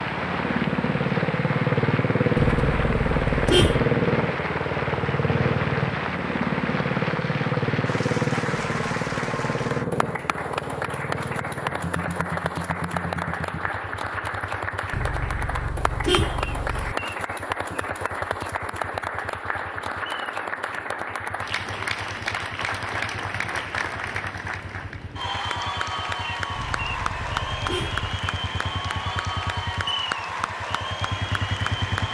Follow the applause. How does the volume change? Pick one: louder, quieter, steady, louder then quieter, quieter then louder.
steady.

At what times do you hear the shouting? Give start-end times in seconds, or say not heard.
not heard.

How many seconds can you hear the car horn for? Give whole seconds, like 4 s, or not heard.
5 s.